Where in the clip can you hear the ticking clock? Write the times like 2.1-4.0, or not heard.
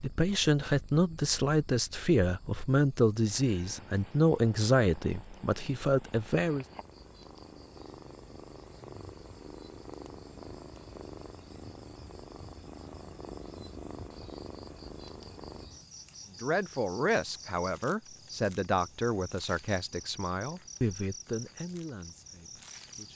not heard.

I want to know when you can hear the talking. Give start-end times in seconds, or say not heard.
0.0-6.7, 16.4-23.1.